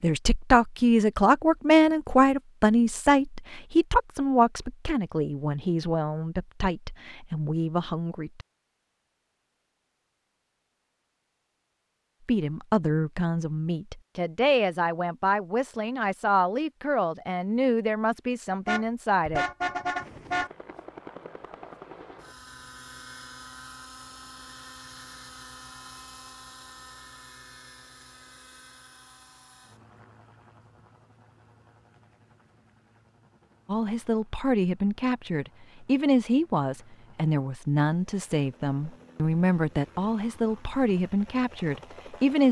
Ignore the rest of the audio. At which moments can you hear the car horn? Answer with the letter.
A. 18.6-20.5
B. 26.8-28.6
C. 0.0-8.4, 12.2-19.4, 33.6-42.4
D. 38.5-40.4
A.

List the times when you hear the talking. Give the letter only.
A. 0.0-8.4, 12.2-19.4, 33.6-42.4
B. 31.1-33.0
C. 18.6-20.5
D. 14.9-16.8
A.